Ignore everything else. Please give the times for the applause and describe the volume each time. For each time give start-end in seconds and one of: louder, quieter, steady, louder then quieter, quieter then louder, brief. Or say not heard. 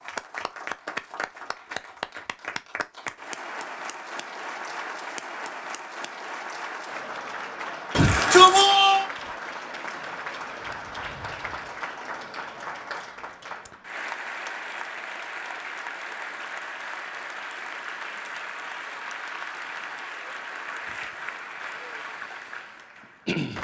0.0-23.5 steady.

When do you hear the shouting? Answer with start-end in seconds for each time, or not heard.
7.9-9.1.